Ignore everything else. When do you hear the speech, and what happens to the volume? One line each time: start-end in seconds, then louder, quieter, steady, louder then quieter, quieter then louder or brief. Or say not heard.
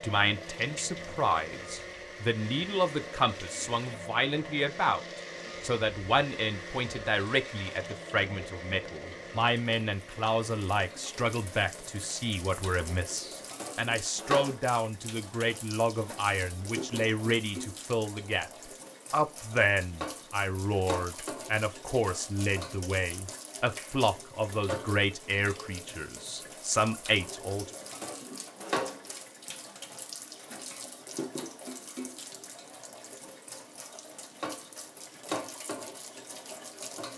0.0-27.7 steady.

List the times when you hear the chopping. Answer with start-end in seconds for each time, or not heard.
not heard.